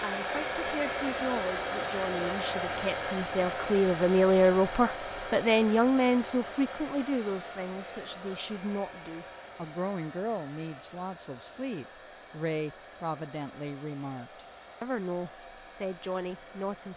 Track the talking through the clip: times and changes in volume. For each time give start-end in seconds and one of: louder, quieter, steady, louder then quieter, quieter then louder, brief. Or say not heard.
0.0-16.9 louder then quieter.